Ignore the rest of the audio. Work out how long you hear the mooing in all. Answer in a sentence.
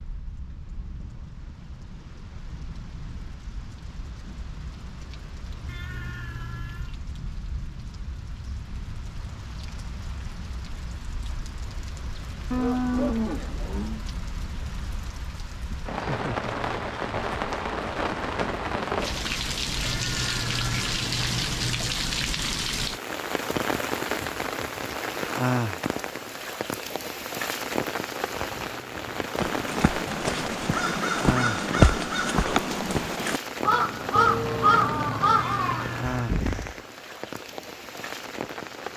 You can hear the mooing for 3 seconds altogether.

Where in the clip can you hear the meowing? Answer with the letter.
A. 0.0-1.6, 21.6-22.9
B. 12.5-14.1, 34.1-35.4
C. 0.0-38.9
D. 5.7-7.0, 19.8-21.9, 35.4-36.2
D.